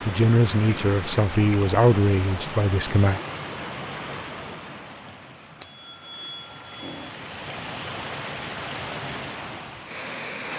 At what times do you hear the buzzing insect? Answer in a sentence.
You can't hear the buzzing insect here.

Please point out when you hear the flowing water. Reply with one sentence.
The flowing water can be heard from 0.0 to 10.5 s.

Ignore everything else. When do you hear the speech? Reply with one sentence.
The speech can be heard from 0.0 to 3.2 s.